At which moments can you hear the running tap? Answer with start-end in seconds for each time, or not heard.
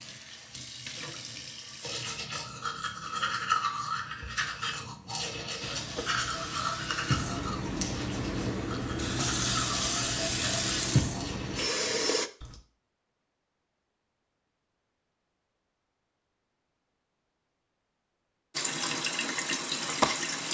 0.0-2.1, 5.6-12.3, 18.5-20.4.